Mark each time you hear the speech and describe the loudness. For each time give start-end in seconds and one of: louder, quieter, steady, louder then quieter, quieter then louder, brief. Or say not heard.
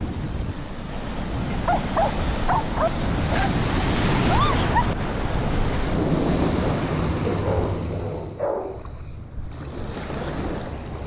not heard.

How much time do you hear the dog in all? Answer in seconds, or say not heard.
4 s.